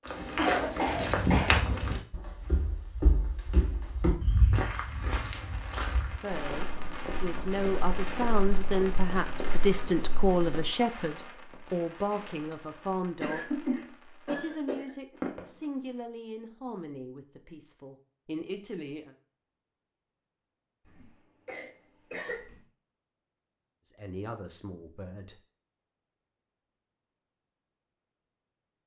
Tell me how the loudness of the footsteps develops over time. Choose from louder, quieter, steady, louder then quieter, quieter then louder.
quieter.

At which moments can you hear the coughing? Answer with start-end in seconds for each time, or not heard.
0.3-1.6, 13.2-15.2, 20.9-22.6.